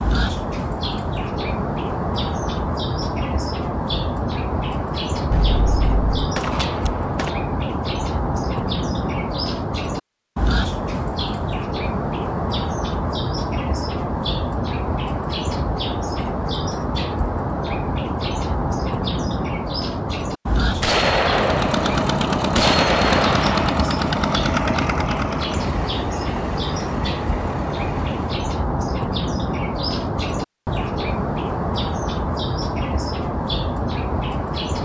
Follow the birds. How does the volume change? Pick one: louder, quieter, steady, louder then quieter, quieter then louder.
steady.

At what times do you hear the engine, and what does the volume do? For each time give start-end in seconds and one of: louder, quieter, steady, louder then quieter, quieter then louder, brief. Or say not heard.
21.2-28.4 quieter.